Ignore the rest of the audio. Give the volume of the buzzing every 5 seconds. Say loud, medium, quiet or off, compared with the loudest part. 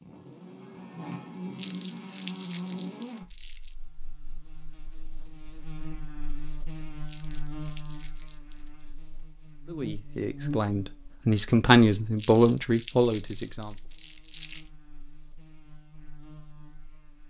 loud, loud, loud, quiet.